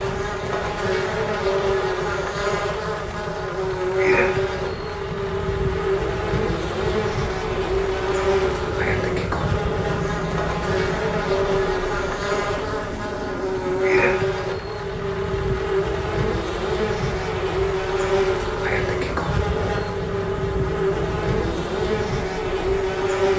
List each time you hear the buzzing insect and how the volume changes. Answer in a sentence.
You can hear the buzzing insect from 0.0 to 23.3 s, at a steady volume.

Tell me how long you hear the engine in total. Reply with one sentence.
You can hear the engine for 23 seconds altogether.